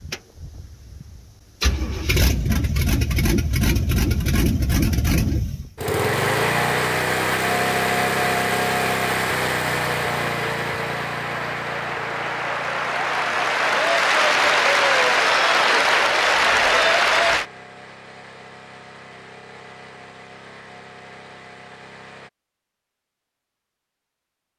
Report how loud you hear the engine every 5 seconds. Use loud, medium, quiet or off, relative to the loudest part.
loud, loud, medium, quiet, quiet.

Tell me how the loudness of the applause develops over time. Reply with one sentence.
The loudness of the applause goes up.